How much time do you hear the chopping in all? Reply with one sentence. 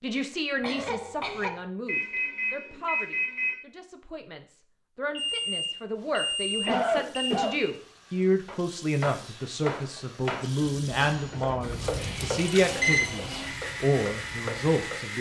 You can hear the chopping for 7 seconds altogether.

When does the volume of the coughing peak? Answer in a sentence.
The loudest moment of the coughing is at 7 seconds.